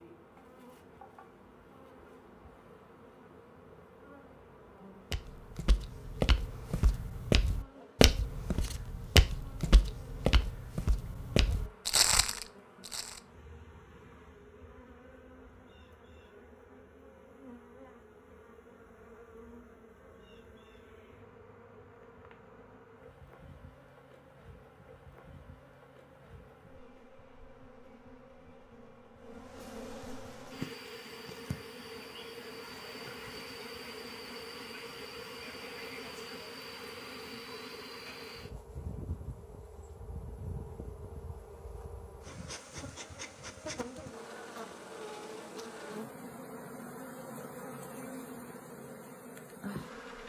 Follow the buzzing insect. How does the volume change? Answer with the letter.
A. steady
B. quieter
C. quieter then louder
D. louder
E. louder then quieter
D.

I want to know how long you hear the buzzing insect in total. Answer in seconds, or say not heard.
50 s.